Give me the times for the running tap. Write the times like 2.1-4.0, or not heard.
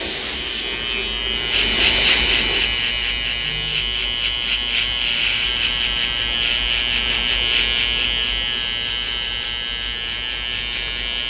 0.0-2.8.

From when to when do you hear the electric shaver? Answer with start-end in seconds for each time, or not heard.
0.0-11.2.